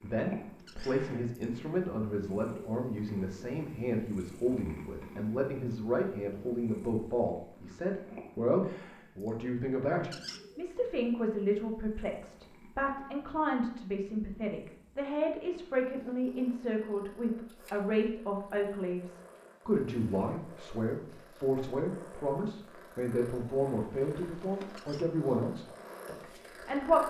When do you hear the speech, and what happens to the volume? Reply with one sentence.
The speech can be heard from 0.0 to 27.0 s, at a steady volume.